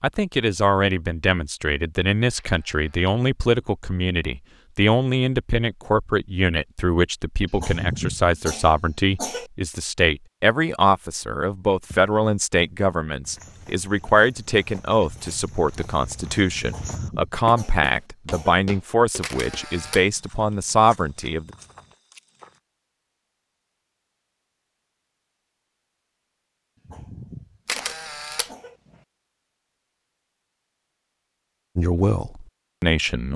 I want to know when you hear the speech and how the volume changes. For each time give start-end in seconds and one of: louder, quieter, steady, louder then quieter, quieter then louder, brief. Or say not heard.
0.0-21.5 steady
31.8-33.3 brief.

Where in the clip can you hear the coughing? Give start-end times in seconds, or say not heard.
7.5-9.5, 16.6-18.6, 26.8-28.8.